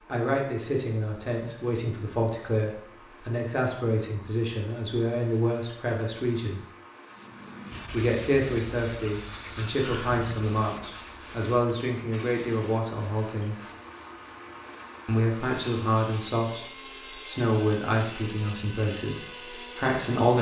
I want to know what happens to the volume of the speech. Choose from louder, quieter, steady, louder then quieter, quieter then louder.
steady.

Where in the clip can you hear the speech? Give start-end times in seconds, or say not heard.
0.1-6.6, 7.9-13.6, 15.1-20.3.